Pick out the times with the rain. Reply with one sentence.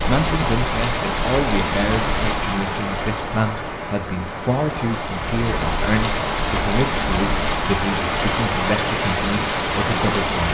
You can hear the rain from 0.0 to 10.4 s.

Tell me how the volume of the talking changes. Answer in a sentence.
The volume of the talking stays about the same.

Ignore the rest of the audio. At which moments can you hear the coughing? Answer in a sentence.
The coughing can't be heard in this clip.